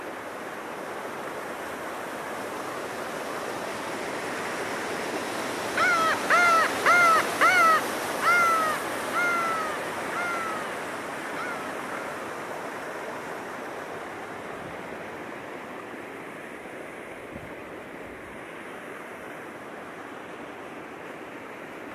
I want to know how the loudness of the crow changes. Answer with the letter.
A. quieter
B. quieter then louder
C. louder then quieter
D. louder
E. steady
A.